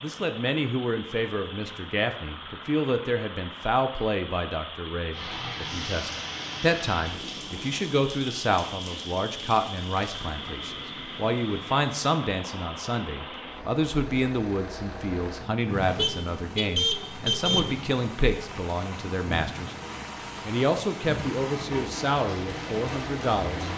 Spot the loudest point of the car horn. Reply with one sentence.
The volume of the car horn peaks at 17 seconds.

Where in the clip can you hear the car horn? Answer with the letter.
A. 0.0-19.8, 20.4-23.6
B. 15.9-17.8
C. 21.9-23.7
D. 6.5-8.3
B.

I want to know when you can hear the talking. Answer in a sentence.
You can hear the talking from 0.0 to 19.8 s and from 20.4 to 23.6 s.